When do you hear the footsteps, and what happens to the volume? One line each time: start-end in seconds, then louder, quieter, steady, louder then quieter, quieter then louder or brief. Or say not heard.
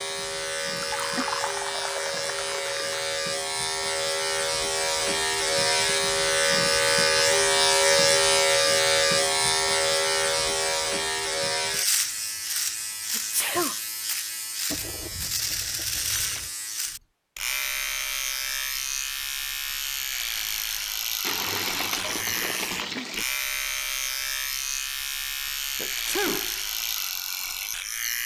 not heard.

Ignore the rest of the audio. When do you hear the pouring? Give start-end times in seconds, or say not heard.
0.8-3.0, 14.7-16.5, 21.2-23.2.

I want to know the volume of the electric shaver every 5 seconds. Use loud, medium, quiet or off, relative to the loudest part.
medium, loud, medium, medium, medium, medium.